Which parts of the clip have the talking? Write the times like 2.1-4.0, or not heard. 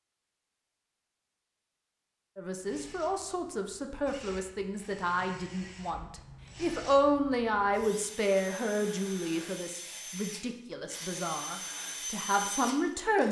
2.4-13.2.